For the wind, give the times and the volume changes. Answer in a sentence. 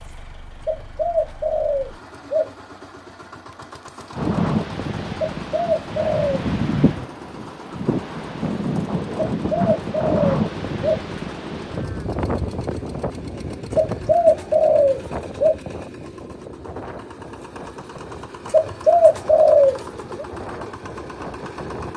The wind can be heard from 4.2 to 21.9 s, getting quieter.